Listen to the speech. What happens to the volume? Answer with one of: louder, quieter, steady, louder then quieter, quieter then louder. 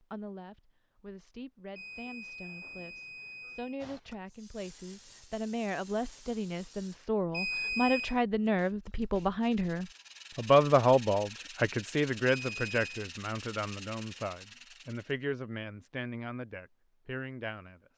louder then quieter.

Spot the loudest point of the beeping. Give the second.
8 s.